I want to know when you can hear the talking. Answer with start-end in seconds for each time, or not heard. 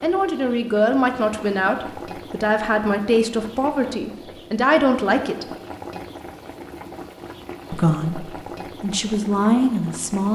0.0-5.5, 7.7-10.3.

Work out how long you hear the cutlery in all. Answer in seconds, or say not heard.
not heard.